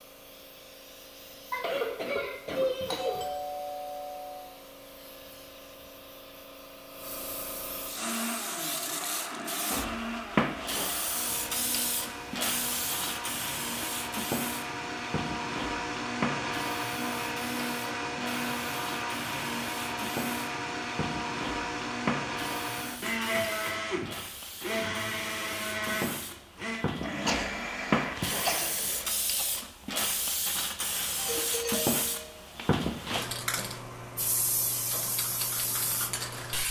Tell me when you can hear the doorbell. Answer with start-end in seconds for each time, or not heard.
2.9-4.5, 31.1-32.5.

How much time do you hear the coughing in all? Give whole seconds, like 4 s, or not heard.
4 s.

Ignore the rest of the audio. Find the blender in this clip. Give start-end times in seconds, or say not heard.
7.9-29.1.